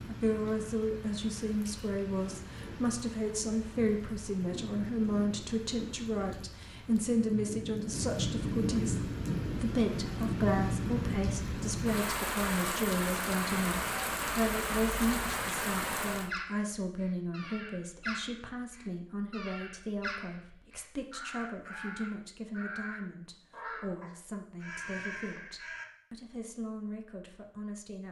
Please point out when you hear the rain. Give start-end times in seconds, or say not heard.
0.0-16.3.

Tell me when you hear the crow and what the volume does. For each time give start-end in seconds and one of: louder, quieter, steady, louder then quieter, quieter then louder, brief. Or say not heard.
16.1-25.9 steady.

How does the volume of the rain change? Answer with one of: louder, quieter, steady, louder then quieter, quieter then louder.
louder.